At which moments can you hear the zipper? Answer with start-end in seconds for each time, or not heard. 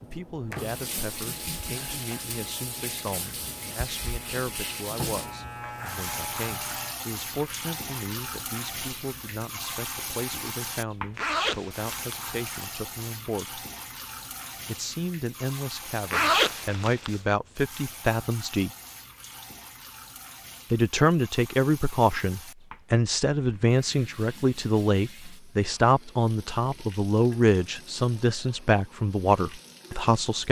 11.2-12.7, 16.1-17.2.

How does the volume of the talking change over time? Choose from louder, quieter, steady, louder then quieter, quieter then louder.
louder.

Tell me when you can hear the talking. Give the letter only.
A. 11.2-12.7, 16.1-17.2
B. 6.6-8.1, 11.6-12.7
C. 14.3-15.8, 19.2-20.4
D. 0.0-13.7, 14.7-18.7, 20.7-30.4
D.